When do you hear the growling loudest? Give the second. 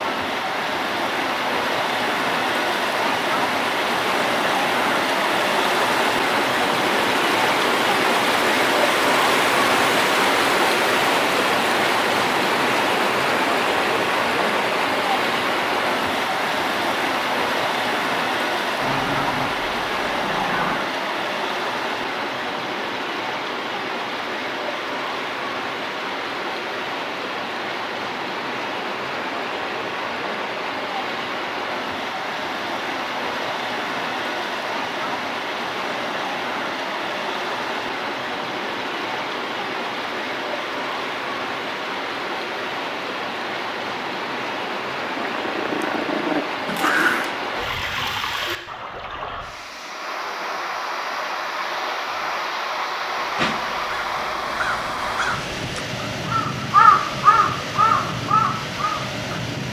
47 s.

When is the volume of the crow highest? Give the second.
57 s.